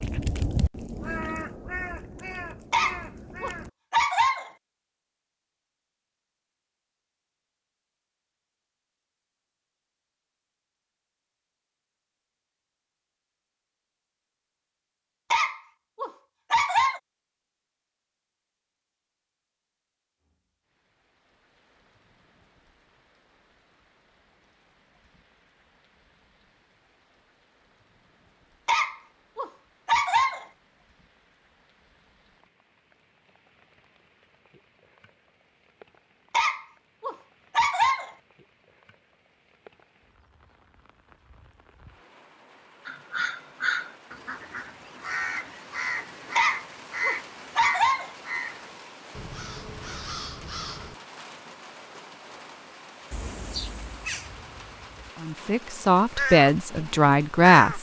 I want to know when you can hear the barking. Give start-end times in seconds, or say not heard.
2.7-4.5, 15.3-17.0, 28.6-30.4, 36.3-38.1, 46.4-48.1.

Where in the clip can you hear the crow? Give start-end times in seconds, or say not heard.
0.0-3.7, 42.9-51.0, 53.1-57.7.